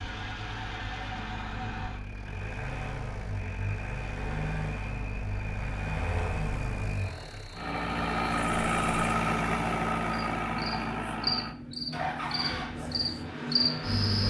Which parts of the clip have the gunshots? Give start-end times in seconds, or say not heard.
not heard.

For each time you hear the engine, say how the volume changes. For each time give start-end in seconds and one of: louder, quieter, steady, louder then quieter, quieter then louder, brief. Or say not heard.
0.0-14.2 louder then quieter.